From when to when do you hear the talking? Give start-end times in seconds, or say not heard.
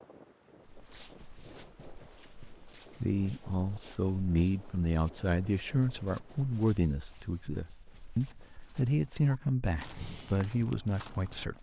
3.0-11.5.